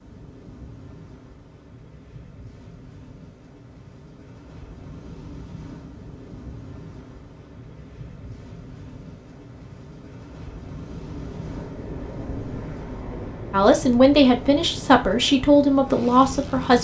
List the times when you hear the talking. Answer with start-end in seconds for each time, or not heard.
13.5-16.7.